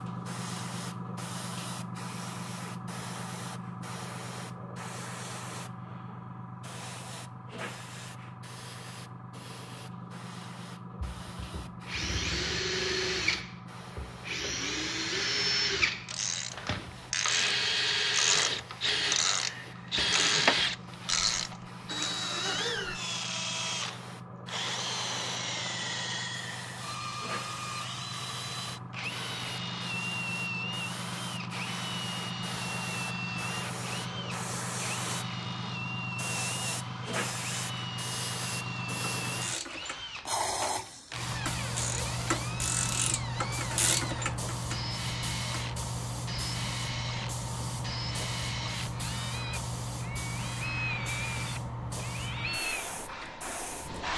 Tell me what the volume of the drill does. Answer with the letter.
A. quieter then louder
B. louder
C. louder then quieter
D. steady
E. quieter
E.